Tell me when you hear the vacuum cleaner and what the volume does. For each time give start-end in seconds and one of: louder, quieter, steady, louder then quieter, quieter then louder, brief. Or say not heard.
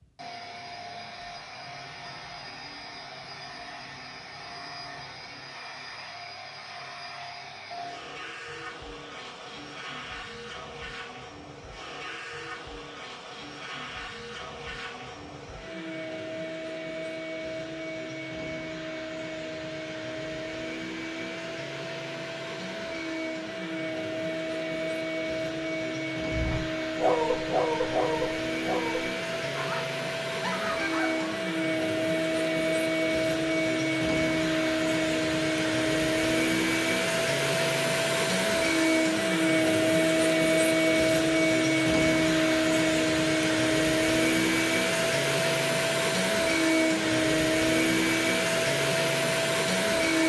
0.0-50.2 louder.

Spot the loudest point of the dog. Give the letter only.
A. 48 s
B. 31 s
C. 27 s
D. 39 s
C.